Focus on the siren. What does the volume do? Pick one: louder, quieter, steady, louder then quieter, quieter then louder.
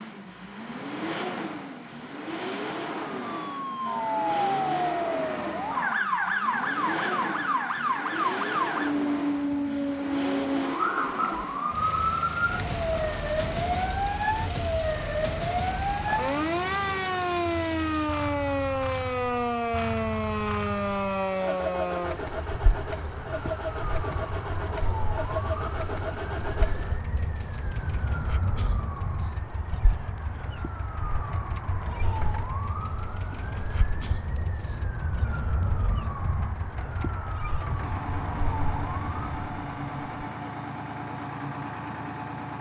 quieter.